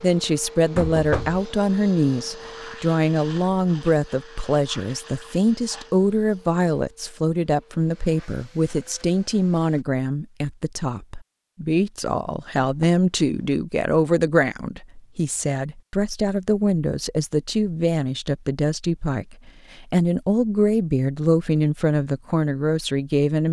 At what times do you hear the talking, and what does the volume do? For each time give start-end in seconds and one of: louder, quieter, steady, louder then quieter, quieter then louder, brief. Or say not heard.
0.0-23.4 steady.